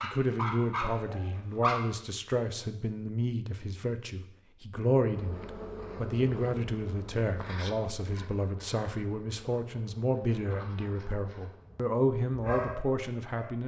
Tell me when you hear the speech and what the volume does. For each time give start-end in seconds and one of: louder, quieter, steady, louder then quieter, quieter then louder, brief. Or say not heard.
0.0-13.6 steady.